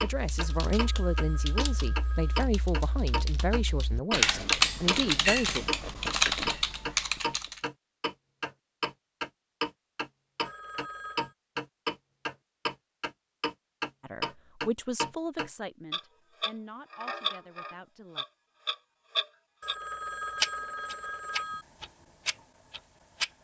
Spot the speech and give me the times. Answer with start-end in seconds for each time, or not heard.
0.0-5.7, 14.0-18.2.